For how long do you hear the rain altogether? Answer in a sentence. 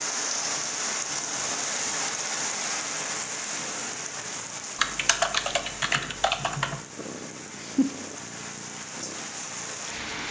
The rain can be heard for 10 seconds in total.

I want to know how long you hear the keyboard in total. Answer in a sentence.
You can hear the keyboard for 2 seconds altogether.